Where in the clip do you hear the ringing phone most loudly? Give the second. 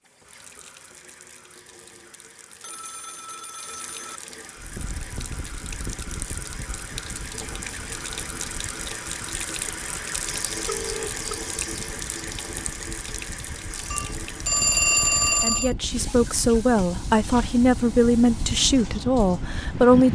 15 s.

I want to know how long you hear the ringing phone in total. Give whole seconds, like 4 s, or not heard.
4 s.